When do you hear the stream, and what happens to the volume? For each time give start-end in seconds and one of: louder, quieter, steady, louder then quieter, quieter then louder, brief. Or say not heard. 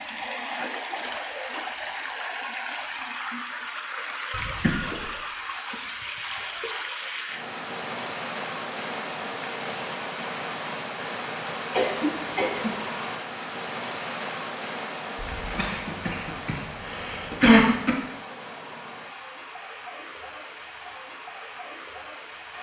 0.0-22.5 quieter.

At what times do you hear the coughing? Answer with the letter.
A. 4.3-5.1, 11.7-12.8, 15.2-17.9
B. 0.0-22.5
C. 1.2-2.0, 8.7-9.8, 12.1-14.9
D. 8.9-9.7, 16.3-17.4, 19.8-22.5
A.